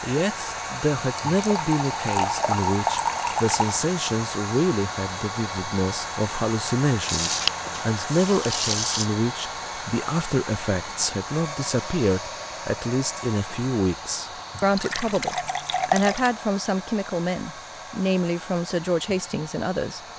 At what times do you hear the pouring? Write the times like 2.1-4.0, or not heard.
1.1-3.8, 7.0-9.1, 14.6-16.3.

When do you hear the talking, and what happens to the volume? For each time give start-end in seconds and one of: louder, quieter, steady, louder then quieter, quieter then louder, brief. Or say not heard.
0.0-20.0 steady.